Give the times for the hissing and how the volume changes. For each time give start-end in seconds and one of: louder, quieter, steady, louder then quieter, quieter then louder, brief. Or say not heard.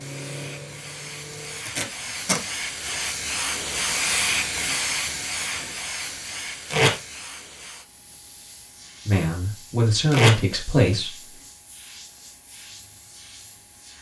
0.0-13.9 louder then quieter.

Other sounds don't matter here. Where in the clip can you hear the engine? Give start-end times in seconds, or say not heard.
0.0-1.7.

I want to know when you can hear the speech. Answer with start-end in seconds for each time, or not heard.
9.1-11.4.